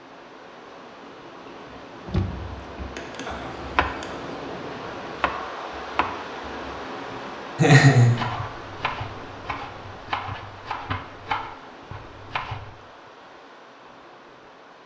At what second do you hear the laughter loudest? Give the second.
8 s.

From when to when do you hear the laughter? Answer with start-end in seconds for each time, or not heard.
3.0-4.3, 7.5-8.2.